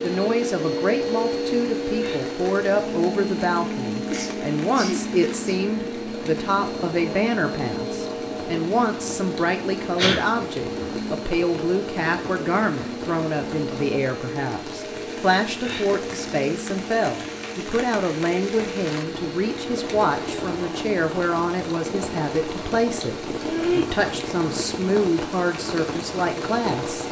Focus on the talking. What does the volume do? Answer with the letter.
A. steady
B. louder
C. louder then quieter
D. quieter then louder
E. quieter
A.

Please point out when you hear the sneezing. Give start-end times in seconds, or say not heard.
4.1-5.7, 9.9-10.8, 23.4-23.9.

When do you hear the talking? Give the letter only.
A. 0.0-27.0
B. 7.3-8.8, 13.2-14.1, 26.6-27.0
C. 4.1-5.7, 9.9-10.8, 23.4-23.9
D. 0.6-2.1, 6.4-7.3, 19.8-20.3
A.